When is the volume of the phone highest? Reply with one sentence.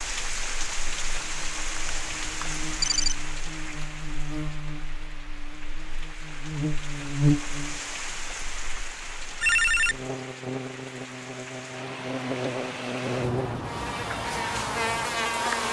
The volume of the phone peaks at 10 seconds.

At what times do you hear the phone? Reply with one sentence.
You can hear the phone from 1.8 to 3.2 s and from 9.4 to 10.1 s.